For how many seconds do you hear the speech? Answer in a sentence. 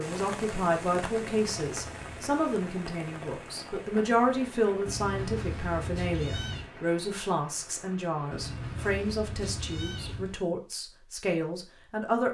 You can hear the speech for 12 seconds altogether.